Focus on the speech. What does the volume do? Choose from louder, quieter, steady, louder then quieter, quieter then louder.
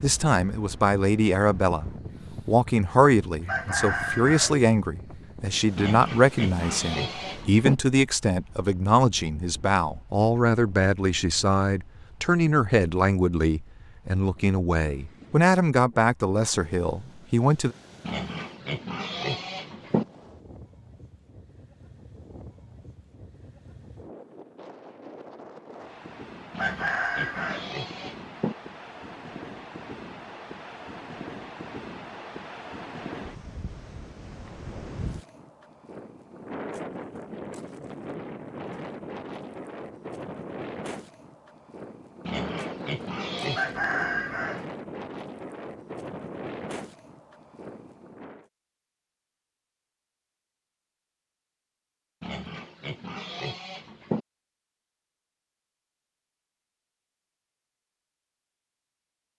steady.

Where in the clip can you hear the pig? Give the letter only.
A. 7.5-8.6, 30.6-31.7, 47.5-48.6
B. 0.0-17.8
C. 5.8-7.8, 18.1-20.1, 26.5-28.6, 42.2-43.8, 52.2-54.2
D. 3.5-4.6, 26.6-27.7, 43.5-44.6
C.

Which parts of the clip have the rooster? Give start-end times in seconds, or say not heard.
3.5-4.6, 26.6-27.7, 43.5-44.6.